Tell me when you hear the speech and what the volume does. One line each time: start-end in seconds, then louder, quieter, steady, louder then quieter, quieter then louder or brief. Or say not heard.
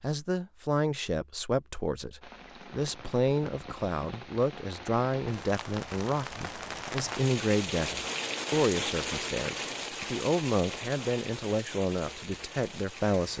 0.0-13.3 steady.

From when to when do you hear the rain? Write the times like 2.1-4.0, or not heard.
2.2-13.3.